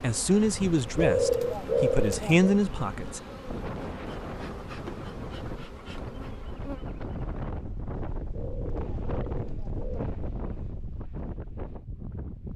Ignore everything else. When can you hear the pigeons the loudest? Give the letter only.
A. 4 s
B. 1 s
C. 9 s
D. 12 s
B.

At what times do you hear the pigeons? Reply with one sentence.
The pigeons can be heard from 0.9 to 2.6 s and from 8.3 to 10.1 s.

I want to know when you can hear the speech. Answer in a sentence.
You can hear the speech from 0.0 to 3.2 s.